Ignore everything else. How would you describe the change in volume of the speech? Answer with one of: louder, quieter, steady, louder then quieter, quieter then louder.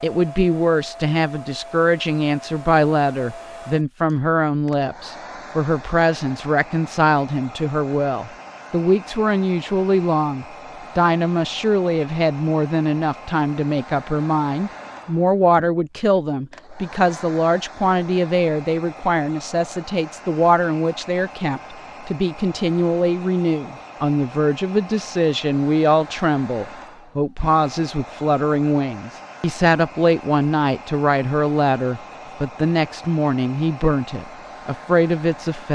steady.